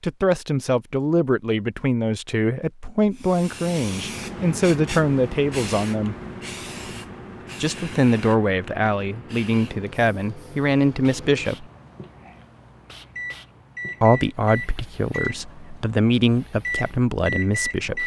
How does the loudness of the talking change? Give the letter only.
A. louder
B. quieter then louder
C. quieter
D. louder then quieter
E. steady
E.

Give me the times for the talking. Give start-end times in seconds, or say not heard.
0.0-6.2, 7.6-11.7, 14.0-18.0.